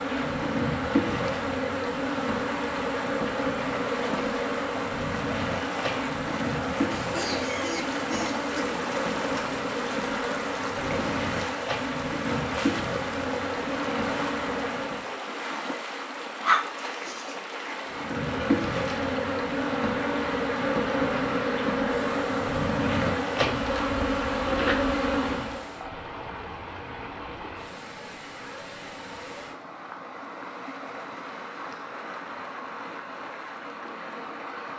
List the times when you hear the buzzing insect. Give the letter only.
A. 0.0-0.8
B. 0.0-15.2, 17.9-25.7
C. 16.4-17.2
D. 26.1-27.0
B.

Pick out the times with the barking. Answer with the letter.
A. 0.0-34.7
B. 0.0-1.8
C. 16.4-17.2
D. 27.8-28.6
C.